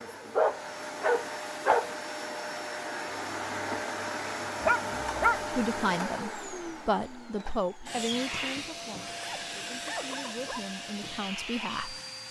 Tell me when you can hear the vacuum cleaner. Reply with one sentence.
The vacuum cleaner can be heard from 0.0 to 12.2 s.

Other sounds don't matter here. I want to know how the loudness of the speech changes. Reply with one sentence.
The loudness of the speech goes down, then up.